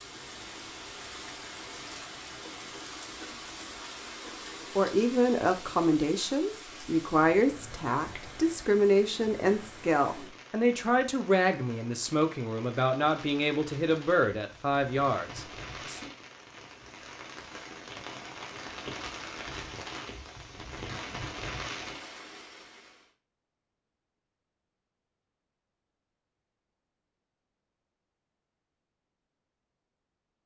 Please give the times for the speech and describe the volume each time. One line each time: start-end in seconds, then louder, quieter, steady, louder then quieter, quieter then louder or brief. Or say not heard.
4.8-16.0 steady.